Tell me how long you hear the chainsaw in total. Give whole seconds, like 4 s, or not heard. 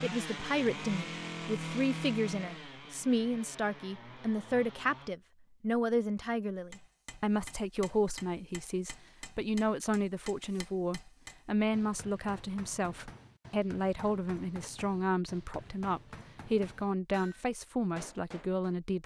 5 s.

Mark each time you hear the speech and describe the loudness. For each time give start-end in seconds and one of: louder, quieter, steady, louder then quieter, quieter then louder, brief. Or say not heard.
0.0-19.0 steady.